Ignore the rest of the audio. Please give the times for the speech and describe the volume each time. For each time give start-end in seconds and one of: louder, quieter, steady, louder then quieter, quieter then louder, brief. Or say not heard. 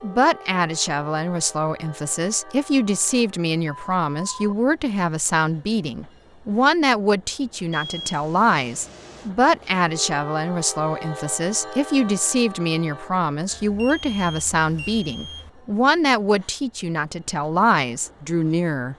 0.0-18.9 steady.